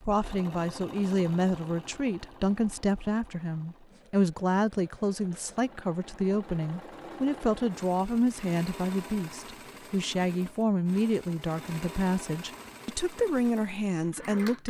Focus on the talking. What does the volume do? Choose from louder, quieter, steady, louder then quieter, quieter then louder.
steady.